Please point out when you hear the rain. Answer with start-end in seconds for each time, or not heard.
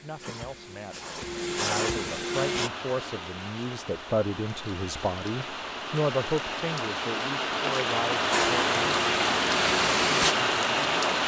2.3-11.2.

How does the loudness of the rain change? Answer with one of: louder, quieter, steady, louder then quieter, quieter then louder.
louder.